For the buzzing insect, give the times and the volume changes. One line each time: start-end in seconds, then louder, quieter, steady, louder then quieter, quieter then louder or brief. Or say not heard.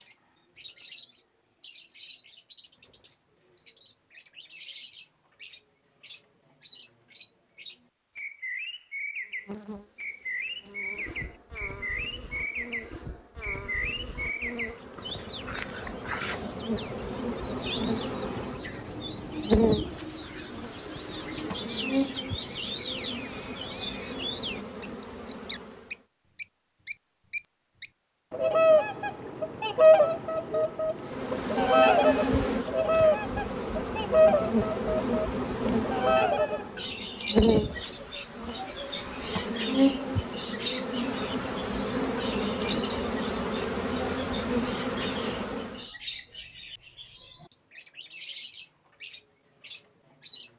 9.4-26.1 louder then quieter
31.0-45.9 steady.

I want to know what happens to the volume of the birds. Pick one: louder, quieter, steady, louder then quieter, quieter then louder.
louder then quieter.